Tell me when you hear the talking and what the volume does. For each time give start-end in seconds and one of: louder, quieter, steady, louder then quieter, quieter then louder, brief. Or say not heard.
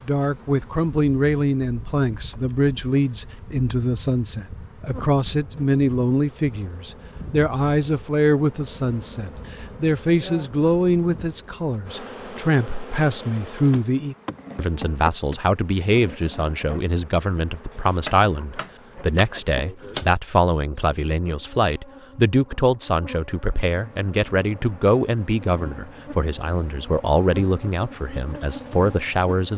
0.1-29.5 steady.